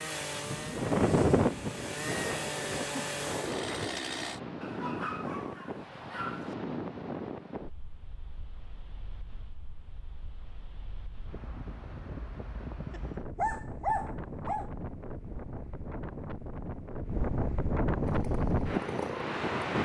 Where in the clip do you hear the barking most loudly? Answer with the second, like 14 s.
14 s.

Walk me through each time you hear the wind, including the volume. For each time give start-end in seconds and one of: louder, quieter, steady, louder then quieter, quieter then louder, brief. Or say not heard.
0.0-19.8 quieter then louder.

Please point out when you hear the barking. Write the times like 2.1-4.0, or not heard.
4.6-6.5, 12.9-14.7.